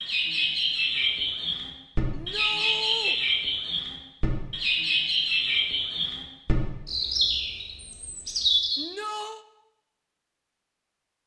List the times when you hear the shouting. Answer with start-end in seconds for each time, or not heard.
2.1-3.1, 8.8-9.4.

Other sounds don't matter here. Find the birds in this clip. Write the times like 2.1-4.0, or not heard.
0.0-8.8.